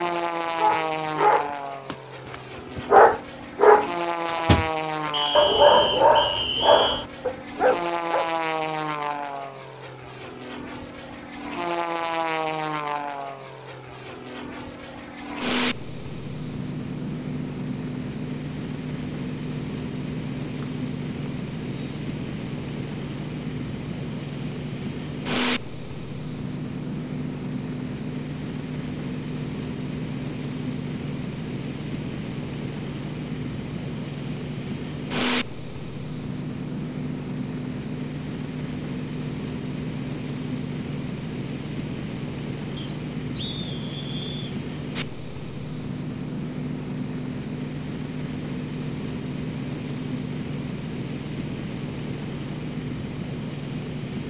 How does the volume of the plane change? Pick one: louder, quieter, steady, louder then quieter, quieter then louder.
steady.